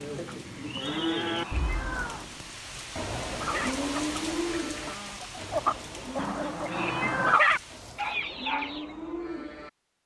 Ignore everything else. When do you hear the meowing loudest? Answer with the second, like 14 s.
7 s.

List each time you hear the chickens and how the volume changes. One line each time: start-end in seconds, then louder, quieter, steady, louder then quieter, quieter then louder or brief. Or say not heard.
3.3-8.9 louder then quieter.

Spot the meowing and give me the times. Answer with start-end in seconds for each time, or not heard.
0.8-2.3, 6.2-7.4.